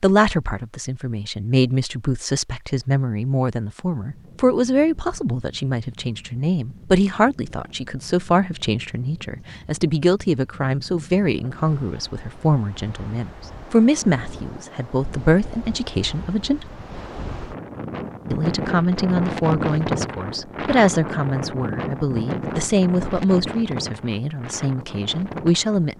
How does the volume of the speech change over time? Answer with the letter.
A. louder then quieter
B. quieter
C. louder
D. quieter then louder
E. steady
E.